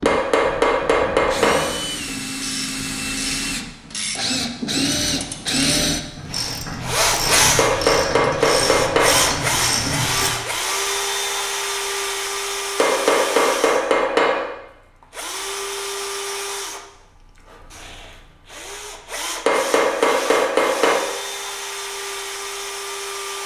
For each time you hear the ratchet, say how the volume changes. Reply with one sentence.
The ratchet can be heard from 2.0 to 10.3 s, getting louder.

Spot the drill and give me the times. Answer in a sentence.
The drill can be heard from 0.0 to 23.4 s.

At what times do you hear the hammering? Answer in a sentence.
You can hear the hammering from 0.1 to 1.7 s, from 7.5 to 9.2 s, from 12.8 to 14.4 s and from 19.4 to 21.0 s.